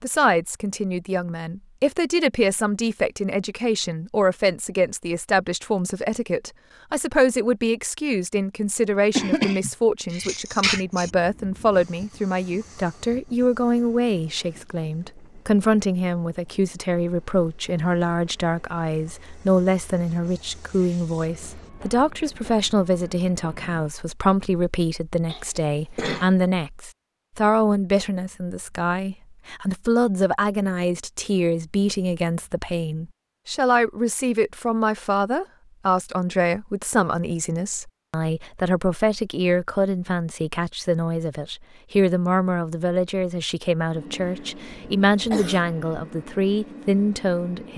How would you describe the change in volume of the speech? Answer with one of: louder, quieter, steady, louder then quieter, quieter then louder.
steady.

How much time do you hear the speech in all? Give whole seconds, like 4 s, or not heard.
48 s.